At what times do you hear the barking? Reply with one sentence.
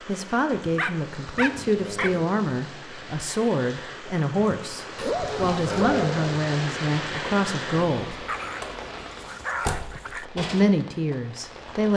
The barking can be heard from 0.8 to 2.1 s, from 5.0 to 6.0 s and from 8.2 to 10.2 s.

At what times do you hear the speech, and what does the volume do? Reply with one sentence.
You can hear the speech from 0.1 to 8.2 s, at a steady volume; and briefly from 9.9 to 11.9 s.